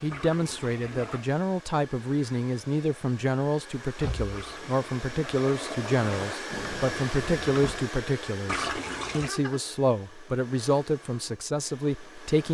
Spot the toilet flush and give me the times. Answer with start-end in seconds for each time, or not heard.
0.1-1.2, 4.3-6.3, 8.4-9.3.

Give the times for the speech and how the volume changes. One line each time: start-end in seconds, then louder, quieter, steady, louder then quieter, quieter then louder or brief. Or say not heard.
0.0-12.4 steady.